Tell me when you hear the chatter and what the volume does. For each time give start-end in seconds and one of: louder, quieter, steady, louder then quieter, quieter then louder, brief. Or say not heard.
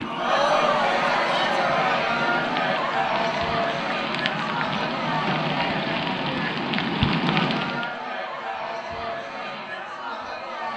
0.0-10.7 quieter.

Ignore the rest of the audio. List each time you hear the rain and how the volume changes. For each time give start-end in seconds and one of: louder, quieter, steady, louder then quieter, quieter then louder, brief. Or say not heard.
0.0-8.0 louder.